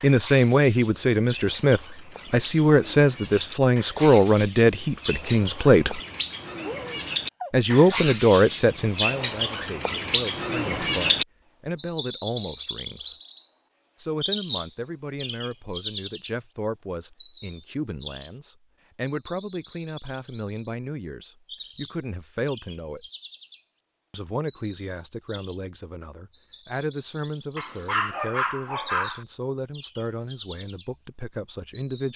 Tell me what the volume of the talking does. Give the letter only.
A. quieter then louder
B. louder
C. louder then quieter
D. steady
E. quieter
E.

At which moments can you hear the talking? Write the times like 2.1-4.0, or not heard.
0.0-6.0, 7.5-13.2, 13.9-23.1, 24.1-32.1.